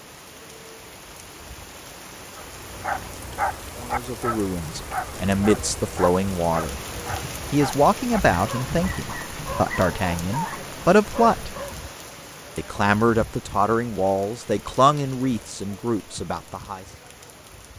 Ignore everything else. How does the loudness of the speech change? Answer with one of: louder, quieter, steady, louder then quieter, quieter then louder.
steady.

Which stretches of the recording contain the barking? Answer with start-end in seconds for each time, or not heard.
2.4-11.8.